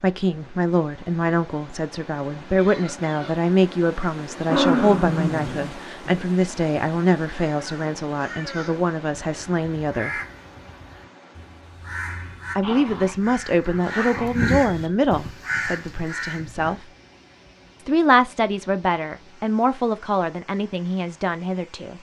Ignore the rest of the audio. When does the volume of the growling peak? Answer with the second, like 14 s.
5 s.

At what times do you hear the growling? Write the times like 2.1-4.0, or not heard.
4.3-6.2, 12.6-14.6.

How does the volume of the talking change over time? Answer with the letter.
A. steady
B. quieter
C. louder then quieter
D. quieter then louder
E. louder
A.